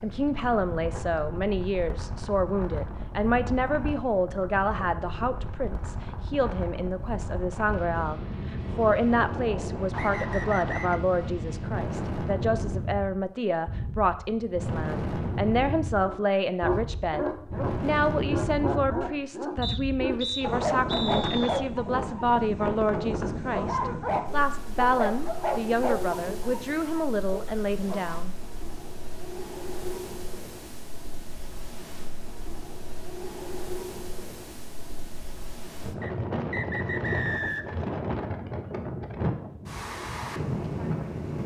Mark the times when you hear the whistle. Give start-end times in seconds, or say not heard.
9.9-11.0, 19.6-21.6, 36.0-37.8.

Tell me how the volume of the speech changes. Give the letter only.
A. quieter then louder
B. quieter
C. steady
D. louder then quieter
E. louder
C.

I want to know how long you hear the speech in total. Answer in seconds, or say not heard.
28 s.